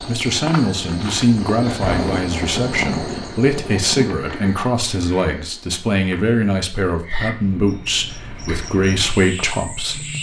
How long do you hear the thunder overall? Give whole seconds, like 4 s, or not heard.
3 s.